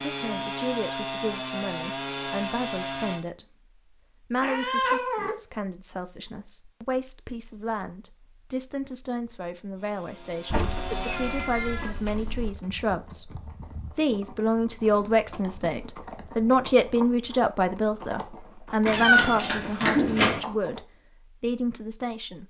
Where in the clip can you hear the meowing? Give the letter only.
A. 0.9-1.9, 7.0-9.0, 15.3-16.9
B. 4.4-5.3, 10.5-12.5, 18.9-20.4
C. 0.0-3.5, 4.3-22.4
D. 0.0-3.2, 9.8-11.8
B.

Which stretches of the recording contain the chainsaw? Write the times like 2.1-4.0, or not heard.
0.0-3.2, 9.8-11.8.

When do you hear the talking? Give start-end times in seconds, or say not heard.
0.0-3.5, 4.3-22.4.